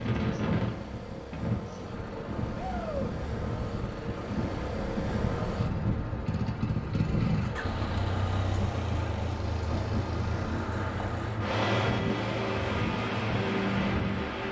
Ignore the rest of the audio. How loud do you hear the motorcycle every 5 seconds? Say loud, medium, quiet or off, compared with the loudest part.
medium, loud, loud.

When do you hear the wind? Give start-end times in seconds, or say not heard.
0.0-14.4.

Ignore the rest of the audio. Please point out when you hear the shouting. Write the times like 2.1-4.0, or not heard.
2.5-3.1.